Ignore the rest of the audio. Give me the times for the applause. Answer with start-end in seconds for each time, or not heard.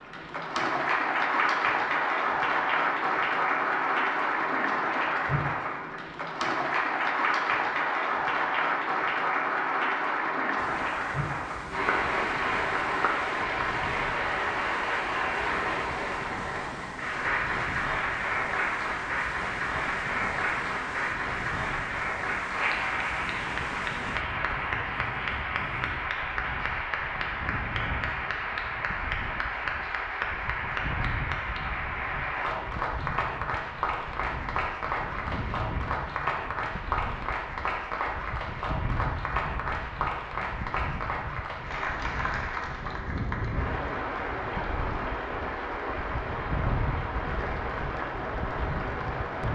0.0-49.4.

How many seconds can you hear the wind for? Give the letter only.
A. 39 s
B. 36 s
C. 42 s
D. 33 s
A.